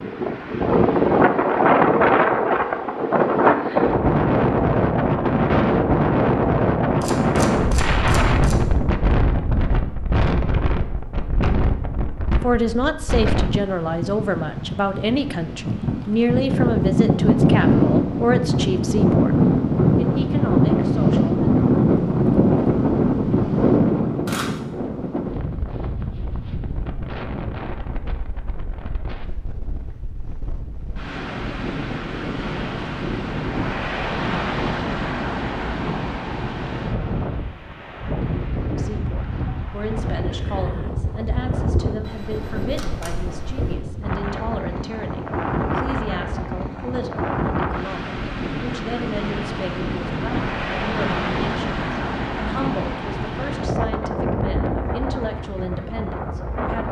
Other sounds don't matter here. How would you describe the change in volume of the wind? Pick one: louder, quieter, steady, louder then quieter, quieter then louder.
quieter.